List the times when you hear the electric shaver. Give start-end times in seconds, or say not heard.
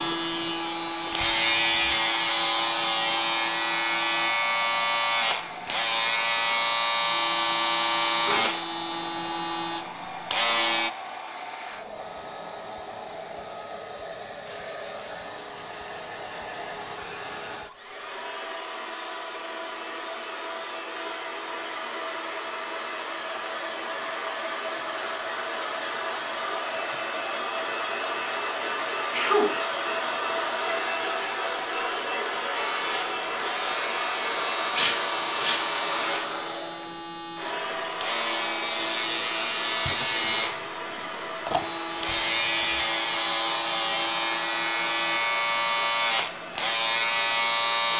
0.0-10.9, 32.5-47.9.